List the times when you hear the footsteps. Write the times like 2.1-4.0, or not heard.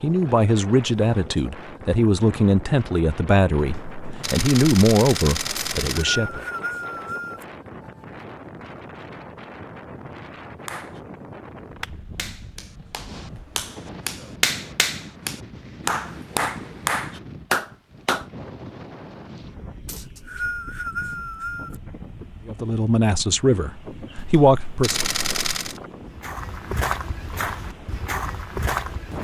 26.0-29.1.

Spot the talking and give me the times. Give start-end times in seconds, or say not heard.
0.0-6.5, 22.4-25.0.